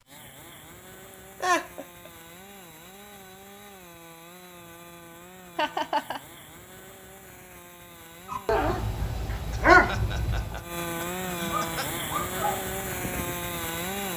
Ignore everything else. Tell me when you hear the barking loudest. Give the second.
10 s.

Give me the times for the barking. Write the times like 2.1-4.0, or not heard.
8.3-10.8, 11.4-13.5.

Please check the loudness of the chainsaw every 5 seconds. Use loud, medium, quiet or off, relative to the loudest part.
quiet, quiet, loud.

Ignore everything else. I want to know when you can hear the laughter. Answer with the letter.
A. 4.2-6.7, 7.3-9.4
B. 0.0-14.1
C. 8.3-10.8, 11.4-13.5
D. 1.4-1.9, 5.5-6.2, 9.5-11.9
D.